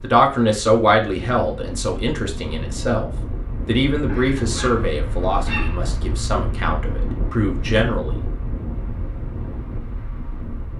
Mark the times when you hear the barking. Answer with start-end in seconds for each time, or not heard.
4.0-5.8.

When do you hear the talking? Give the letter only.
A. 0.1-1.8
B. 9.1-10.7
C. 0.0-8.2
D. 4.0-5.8
C.